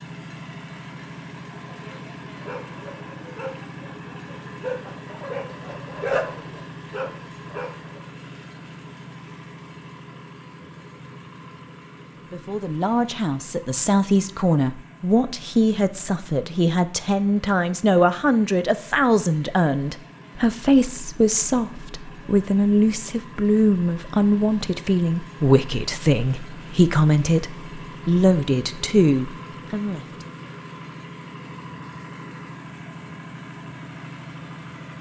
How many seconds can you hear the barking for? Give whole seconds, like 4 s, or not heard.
6 s.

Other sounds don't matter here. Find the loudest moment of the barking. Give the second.
6 s.